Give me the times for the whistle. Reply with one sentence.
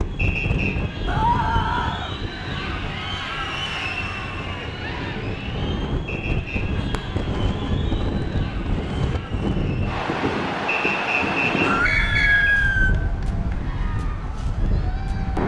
You can hear the whistle from 0.1 to 0.8 s, from 6.0 to 6.7 s and from 10.7 to 12.6 s.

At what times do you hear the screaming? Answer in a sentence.
You can hear the screaming from 1.1 to 2.1 s and from 11.6 to 12.9 s.